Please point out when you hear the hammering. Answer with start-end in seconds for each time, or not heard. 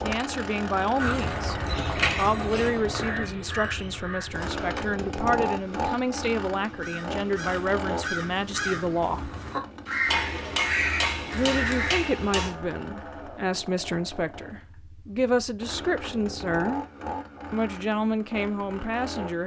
10.1-12.6.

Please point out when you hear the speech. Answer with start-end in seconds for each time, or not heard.
0.0-9.3, 11.3-16.9, 17.5-19.4.